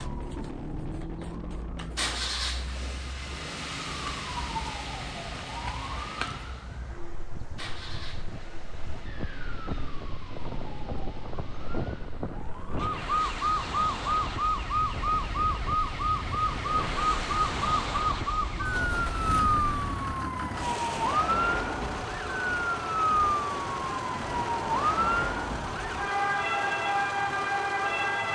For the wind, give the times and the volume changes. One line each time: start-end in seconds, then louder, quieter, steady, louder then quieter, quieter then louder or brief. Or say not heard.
0.0-20.0 louder.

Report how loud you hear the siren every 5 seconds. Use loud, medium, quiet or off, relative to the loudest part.
quiet, quiet, loud, loud, loud, loud.